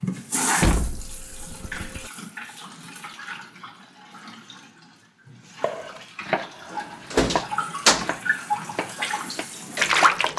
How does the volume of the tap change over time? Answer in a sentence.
The volume of the tap goes down, then up.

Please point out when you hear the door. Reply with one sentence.
The door can be heard from 0.6 to 2.1 s and from 6.7 to 8.1 s.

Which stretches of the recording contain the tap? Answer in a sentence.
You can hear the tap from 0.0 to 10.3 s.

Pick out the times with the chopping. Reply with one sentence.
You can hear the chopping from 5.6 to 10.2 s.